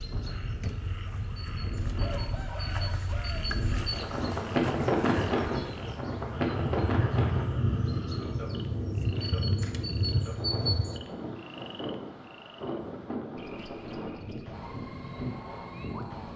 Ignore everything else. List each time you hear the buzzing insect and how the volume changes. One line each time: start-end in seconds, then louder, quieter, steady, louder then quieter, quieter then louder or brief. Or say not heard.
0.0-11.0 louder.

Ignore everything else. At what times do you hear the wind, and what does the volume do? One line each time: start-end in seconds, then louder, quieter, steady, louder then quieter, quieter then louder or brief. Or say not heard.
0.0-16.3 louder then quieter.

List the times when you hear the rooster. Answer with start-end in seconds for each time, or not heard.
2.0-3.5.